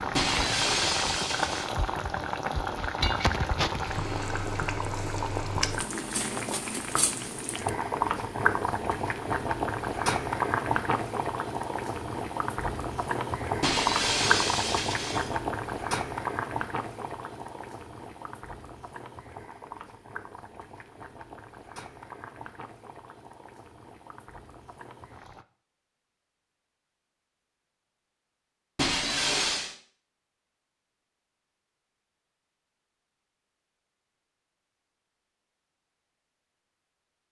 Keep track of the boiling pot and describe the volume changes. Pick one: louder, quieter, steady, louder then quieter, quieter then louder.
quieter.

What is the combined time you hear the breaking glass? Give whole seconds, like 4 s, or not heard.
4 s.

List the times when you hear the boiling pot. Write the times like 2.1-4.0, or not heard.
0.0-25.4.